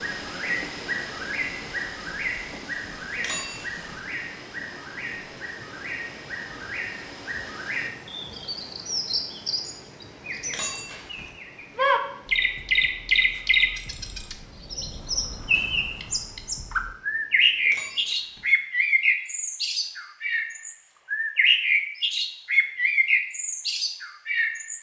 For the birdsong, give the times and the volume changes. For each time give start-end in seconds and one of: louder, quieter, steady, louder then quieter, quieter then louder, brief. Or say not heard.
0.0-24.7 louder.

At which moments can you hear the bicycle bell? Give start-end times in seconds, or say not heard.
3.1-3.8, 10.4-11.3, 17.6-18.4.